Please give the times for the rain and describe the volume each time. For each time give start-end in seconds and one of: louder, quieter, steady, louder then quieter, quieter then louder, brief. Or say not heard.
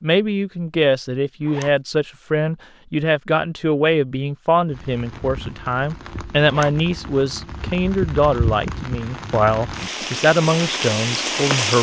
4.7-11.7 louder.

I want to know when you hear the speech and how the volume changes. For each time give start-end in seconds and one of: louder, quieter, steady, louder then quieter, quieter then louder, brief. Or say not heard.
0.0-11.7 steady.